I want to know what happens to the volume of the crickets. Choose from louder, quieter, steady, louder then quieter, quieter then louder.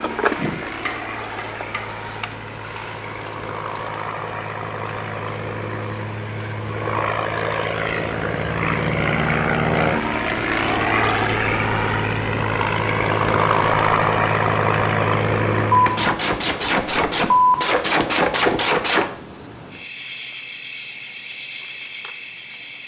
quieter.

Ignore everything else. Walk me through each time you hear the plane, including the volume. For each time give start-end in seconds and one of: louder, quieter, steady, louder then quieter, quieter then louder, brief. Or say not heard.
0.0-16.1 louder.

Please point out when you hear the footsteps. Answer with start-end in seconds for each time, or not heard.
not heard.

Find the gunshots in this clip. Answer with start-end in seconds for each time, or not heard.
15.7-19.1.